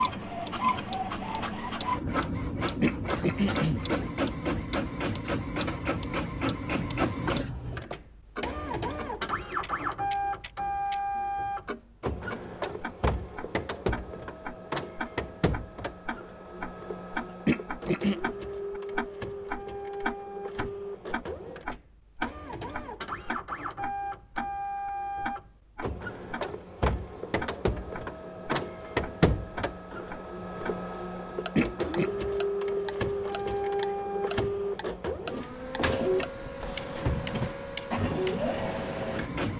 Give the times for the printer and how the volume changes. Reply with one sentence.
You can hear the printer from 0.0 to 39.5 s, getting quieter then louder.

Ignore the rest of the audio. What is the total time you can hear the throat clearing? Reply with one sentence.
You can hear the throat clearing for 3 seconds altogether.